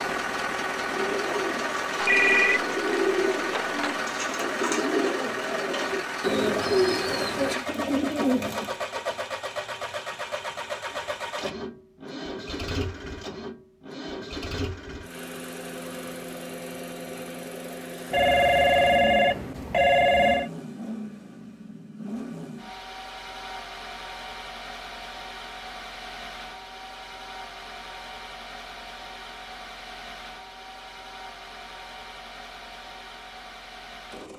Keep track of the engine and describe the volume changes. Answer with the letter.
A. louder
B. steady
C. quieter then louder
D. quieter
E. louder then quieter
D.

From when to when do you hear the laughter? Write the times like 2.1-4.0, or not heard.
not heard.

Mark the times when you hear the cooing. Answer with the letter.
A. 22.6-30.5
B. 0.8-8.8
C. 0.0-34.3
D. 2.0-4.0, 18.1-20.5
B.